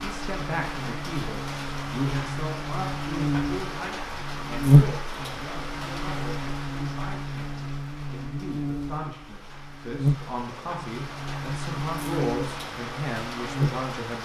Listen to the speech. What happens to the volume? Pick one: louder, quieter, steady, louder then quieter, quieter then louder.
quieter then louder.